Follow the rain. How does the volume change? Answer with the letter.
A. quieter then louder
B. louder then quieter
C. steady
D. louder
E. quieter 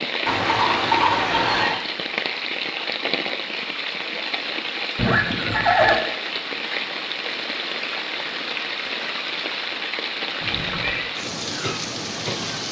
C.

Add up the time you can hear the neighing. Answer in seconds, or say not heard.
3 s.